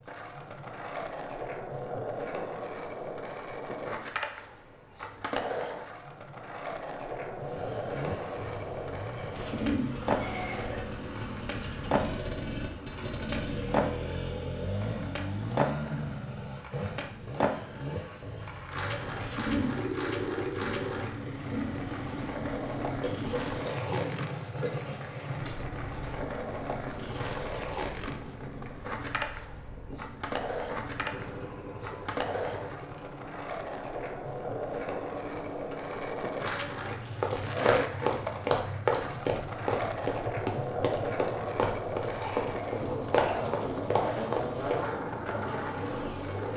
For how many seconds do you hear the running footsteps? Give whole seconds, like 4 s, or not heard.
8 s.